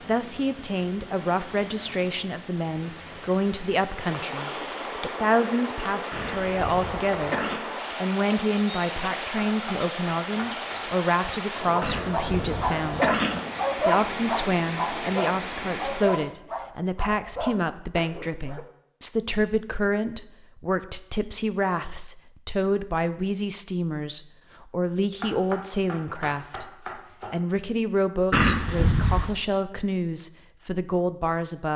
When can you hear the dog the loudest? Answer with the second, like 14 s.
14 s.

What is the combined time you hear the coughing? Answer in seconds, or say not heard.
4 s.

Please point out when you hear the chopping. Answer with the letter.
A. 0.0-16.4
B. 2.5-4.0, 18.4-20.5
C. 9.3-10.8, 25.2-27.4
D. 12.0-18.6
C.